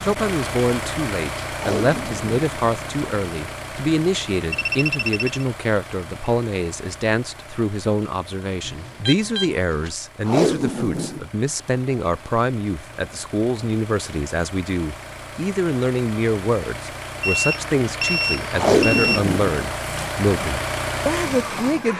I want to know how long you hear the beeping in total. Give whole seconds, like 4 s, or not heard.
4 s.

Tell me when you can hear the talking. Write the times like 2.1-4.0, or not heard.
0.0-21.9.